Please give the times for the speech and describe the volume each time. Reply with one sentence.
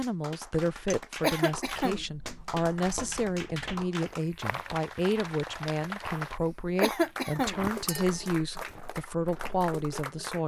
The speech can be heard from 0.0 to 10.4 s, at a steady volume.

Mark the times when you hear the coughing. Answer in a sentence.
The coughing can be heard from 1.2 to 2.0 s and from 6.8 to 7.6 s.